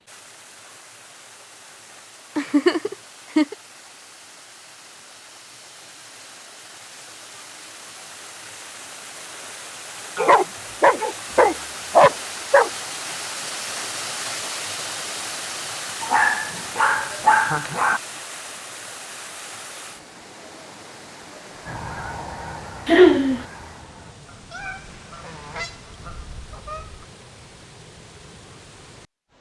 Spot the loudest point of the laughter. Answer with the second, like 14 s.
23 s.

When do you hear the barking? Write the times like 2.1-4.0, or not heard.
10.2-12.7, 16.0-18.0.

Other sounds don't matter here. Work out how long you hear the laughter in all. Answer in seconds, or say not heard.
3 s.